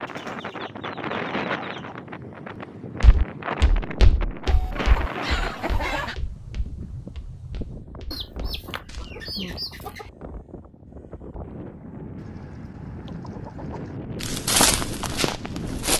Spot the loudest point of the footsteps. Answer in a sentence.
The loudest moment of the footsteps is at 15 seconds.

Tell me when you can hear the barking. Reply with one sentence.
You can't hear the barking here.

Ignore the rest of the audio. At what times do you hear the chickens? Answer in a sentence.
The chickens can be heard from 0.1 to 1.9 s, from 4.5 to 6.2 s, from 8.1 to 10.1 s and from 12.2 to 14.0 s.